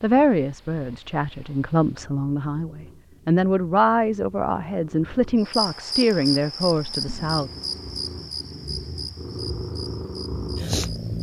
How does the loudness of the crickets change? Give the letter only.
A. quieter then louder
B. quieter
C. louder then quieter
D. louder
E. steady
B.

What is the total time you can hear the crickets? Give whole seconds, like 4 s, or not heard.
6 s.